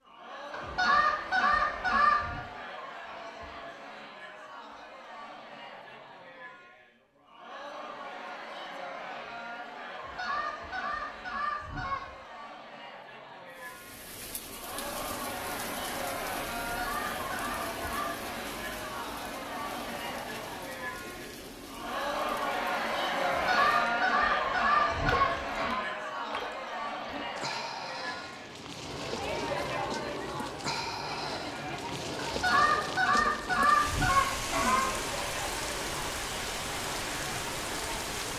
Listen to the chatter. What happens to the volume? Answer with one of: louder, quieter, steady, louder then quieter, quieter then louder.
louder then quieter.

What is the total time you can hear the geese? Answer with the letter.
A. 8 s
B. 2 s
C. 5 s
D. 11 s
D.